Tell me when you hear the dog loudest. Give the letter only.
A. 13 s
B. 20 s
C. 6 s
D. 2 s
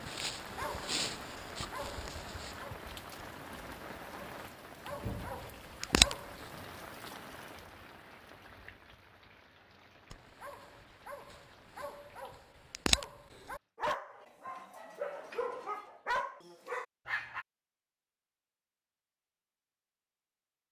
C.